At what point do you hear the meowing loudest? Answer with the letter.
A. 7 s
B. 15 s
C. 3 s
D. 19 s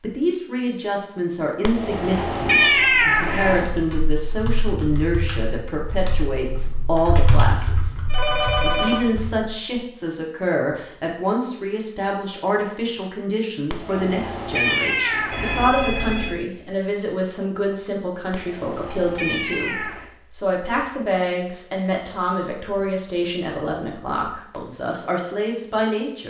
C.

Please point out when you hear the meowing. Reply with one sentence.
You can hear the meowing from 1.6 to 3.6 s, from 13.7 to 15.7 s and from 18.3 to 20.1 s.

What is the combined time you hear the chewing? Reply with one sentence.
The chewing can't be heard in this clip.